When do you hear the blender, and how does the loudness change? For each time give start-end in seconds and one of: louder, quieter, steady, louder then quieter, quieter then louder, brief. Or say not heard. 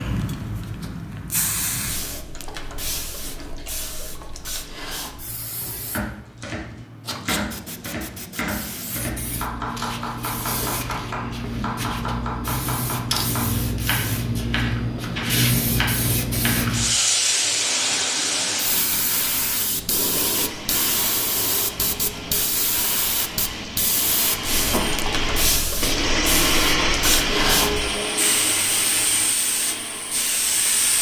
17.6-30.9 louder then quieter.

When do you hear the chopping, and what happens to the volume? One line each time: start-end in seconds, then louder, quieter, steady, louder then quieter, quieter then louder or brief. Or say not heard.
5.9-16.7 steady.